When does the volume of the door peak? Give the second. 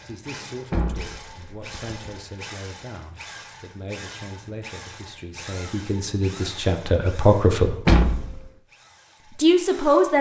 8 s.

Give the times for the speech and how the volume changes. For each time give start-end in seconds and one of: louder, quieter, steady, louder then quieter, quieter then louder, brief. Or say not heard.
0.0-7.8 louder
9.3-10.1 brief.